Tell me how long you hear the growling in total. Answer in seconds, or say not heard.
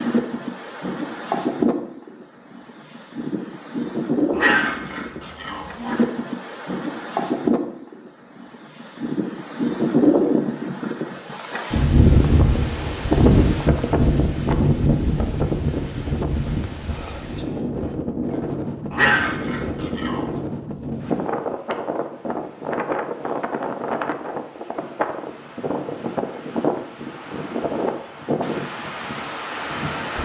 3 s.